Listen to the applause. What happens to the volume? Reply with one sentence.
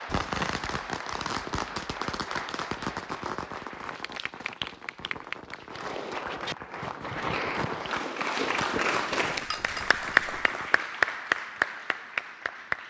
The volume of the applause goes up.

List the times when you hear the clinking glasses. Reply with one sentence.
You can hear the clinking glasses from 9.3 to 10.6 s.